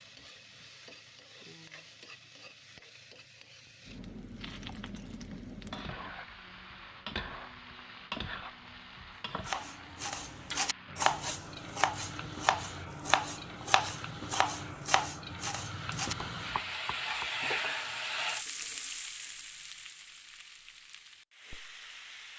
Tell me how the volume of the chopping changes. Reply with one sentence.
The volume of the chopping goes down.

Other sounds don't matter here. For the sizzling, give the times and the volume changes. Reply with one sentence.
The sizzling can be heard from 0.0 to 22.3 s, getting louder.